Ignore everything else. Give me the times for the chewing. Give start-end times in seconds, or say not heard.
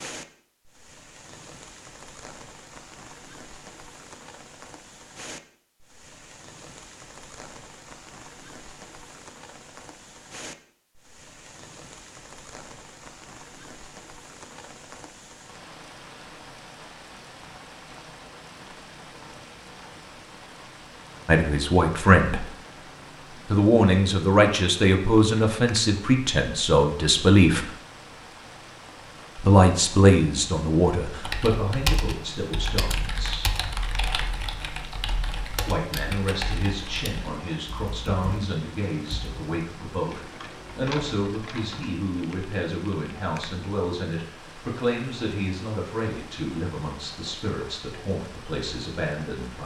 not heard.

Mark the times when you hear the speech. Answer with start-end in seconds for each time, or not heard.
21.2-22.4, 23.5-27.7, 29.4-33.6, 35.6-49.6.